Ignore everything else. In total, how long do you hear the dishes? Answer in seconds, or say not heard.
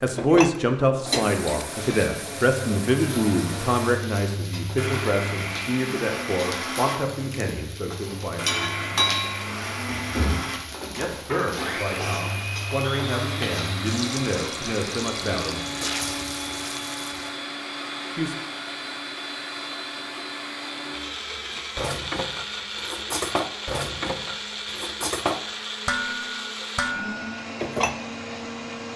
8 s.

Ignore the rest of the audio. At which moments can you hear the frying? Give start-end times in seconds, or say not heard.
1.6-17.4.